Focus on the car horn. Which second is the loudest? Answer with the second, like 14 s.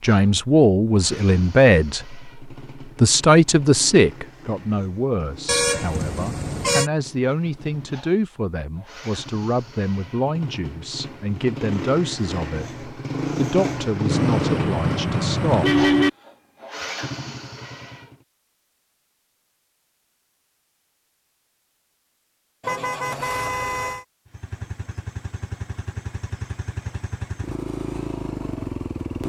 16 s.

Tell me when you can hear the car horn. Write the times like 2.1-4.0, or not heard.
5.5-6.9, 14.1-16.1, 22.6-24.1.